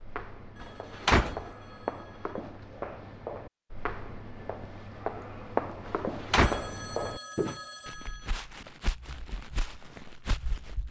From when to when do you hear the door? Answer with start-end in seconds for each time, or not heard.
0.6-1.5, 5.8-6.8.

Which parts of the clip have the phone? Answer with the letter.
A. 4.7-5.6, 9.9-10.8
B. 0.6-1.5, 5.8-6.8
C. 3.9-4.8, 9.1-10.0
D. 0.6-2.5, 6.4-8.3
D.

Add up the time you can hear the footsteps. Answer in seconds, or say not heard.
11 s.